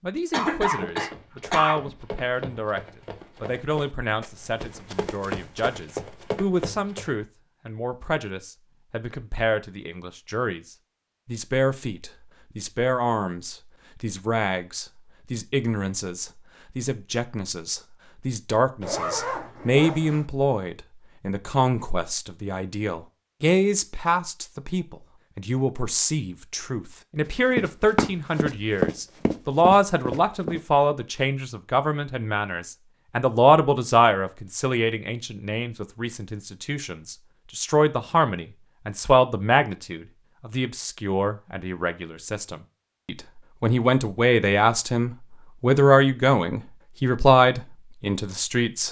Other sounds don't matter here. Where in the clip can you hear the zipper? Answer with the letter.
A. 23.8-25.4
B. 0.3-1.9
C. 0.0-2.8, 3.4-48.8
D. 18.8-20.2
D.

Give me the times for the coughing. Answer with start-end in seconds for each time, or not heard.
0.3-1.9.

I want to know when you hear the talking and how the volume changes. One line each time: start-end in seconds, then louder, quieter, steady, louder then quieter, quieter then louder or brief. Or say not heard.
0.0-2.8 brief
3.4-48.8 louder.